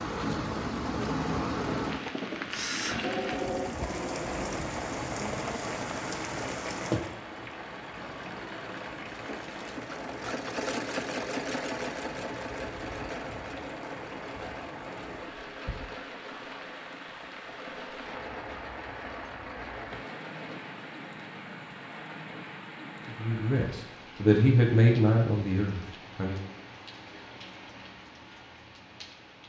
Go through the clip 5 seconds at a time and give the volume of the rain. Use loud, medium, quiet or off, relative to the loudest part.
loud, loud, medium, medium, medium, quiet.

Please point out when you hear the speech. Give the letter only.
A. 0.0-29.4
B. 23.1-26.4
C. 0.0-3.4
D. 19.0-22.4
B.